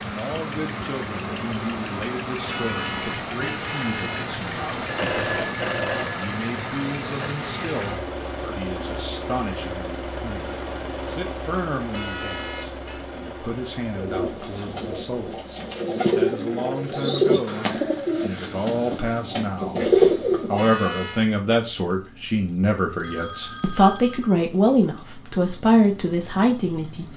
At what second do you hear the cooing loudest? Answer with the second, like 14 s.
20 s.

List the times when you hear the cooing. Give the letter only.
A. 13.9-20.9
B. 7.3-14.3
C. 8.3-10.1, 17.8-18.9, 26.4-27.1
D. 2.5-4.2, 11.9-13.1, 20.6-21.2
A.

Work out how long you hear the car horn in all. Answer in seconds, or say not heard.
4 s.